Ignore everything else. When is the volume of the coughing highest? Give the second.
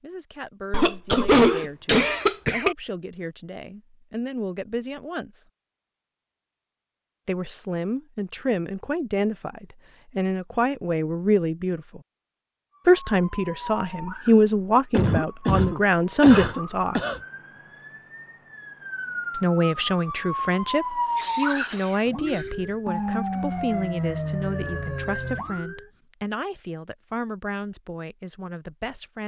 1 s.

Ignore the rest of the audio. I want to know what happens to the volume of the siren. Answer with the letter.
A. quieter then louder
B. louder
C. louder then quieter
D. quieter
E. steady
B.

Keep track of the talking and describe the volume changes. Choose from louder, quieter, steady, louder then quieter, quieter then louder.
louder then quieter.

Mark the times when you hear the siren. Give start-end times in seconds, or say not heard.
12.8-25.9.